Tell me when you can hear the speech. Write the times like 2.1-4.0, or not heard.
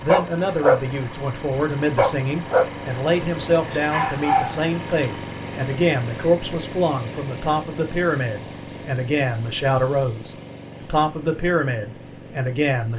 0.0-12.9.